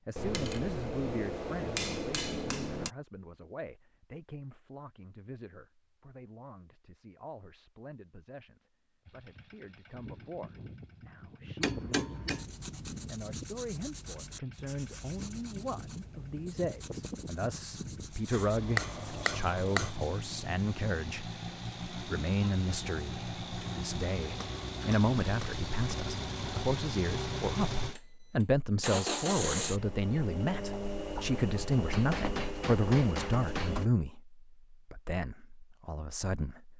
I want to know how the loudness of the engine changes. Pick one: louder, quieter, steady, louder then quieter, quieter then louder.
louder.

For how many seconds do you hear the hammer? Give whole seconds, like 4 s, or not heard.
9 s.